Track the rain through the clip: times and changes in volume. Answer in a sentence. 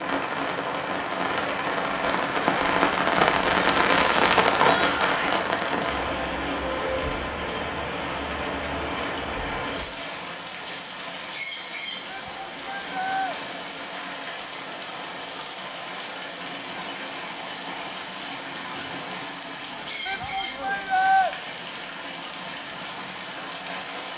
You can hear the rain from 0.0 to 24.1 s, getting quieter.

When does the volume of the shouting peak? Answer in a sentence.
The loudest moment of the shouting is at 21 seconds.